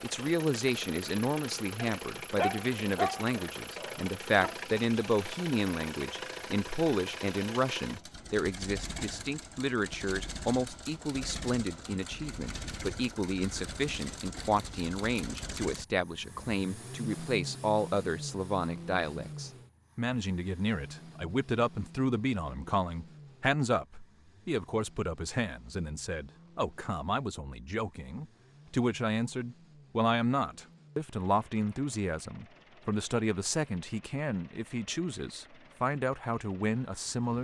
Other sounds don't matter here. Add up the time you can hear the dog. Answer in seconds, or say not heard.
3 s.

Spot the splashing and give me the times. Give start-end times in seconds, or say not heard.
not heard.